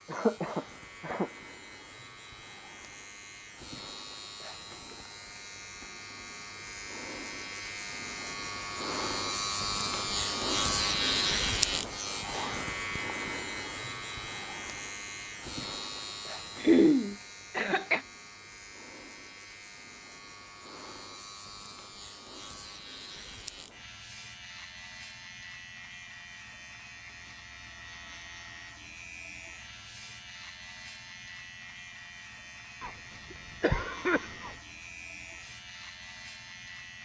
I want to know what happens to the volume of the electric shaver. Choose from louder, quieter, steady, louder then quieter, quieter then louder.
louder then quieter.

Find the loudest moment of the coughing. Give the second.
17 s.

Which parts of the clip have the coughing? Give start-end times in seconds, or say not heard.
0.1-1.3, 16.6-18.0, 32.8-34.5.